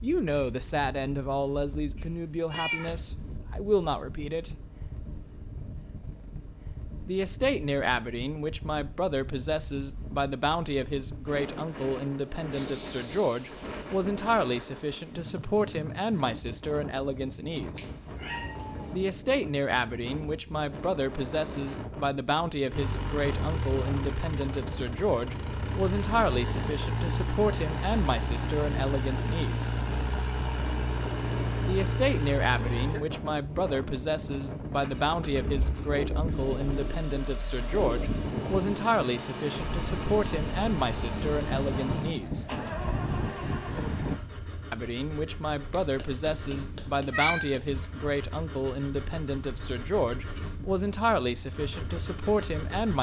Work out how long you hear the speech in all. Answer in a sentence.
The speech can be heard for 45 seconds in total.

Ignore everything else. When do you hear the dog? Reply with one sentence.
You can't hear the dog here.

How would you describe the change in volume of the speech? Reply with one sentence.
The loudness of the speech stays about the same.